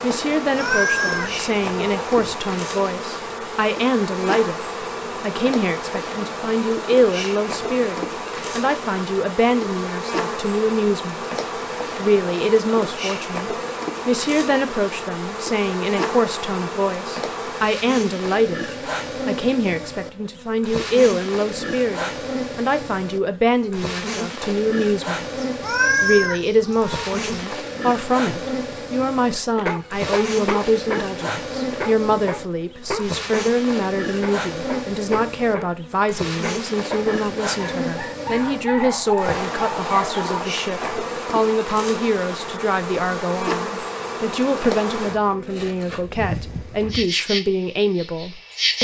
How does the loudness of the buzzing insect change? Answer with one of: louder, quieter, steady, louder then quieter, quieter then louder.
steady.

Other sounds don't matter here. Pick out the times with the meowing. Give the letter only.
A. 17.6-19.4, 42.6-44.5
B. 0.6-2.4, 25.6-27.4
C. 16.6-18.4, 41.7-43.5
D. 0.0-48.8
B.